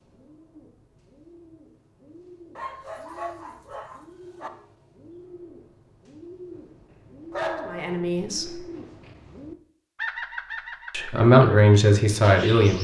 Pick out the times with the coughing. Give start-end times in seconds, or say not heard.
not heard.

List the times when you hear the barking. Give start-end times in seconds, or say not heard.
2.5-4.5, 7.3-8.0.